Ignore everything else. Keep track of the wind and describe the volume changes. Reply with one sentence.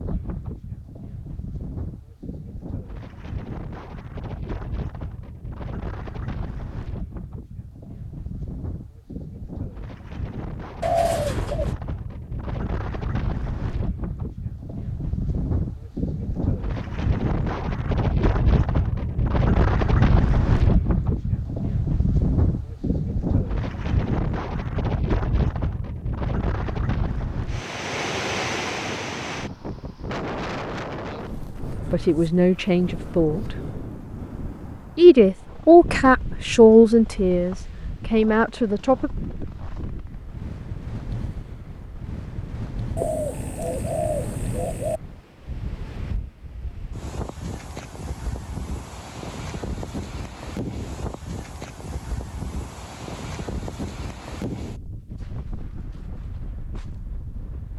The volume of the wind goes up, then down.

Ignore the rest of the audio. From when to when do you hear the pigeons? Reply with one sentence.
You can hear the pigeons from 10.8 to 11.8 s and from 43.0 to 45.0 s.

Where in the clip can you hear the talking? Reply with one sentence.
You can hear the talking from 31.9 to 33.5 s and from 35.0 to 39.1 s.